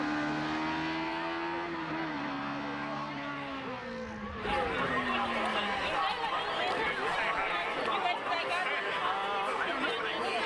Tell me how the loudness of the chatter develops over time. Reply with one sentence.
The volume of the chatter goes up.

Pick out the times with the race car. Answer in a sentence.
The race car can be heard from 0.0 to 6.0 s.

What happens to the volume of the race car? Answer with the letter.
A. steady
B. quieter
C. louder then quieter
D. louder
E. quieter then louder
B.